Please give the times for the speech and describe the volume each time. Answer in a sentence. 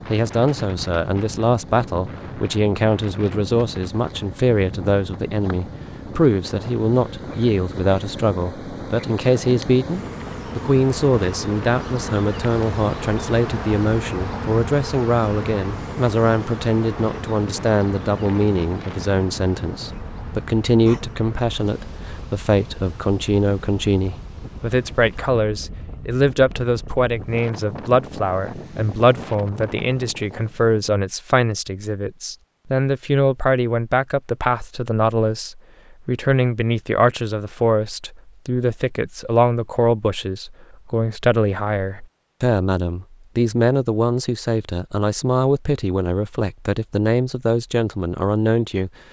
You can hear the speech from 0.1 to 48.9 s, at a steady volume.